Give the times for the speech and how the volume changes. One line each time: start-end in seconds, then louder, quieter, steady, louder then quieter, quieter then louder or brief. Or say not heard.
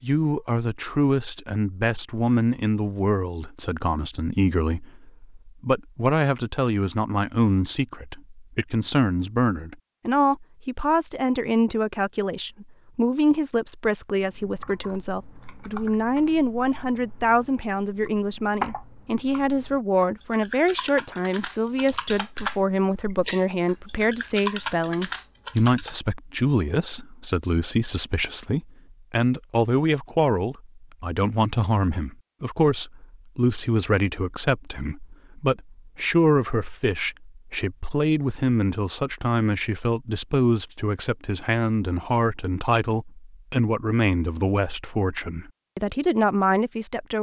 0.0-47.1 steady.